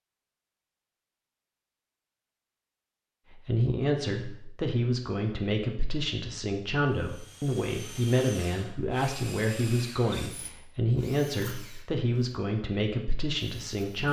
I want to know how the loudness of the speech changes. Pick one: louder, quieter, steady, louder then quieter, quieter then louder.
steady.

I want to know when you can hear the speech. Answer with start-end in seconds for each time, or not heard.
3.4-14.0.